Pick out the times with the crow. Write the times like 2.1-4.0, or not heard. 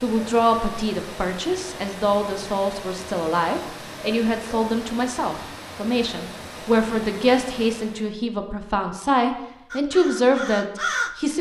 9.7-11.2.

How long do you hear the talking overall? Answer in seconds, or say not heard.
11 s.